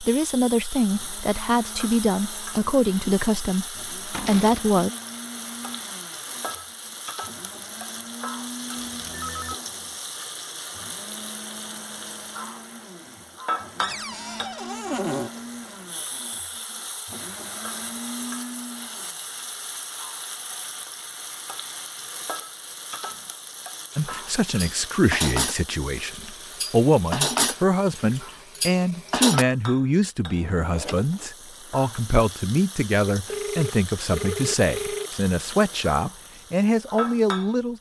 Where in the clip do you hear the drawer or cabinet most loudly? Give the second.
15 s.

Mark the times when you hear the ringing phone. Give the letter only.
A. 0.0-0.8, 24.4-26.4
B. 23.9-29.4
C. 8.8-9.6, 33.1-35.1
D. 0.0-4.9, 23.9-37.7
C.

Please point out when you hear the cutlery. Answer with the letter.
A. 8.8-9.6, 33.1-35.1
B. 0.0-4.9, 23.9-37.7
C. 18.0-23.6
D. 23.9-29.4
D.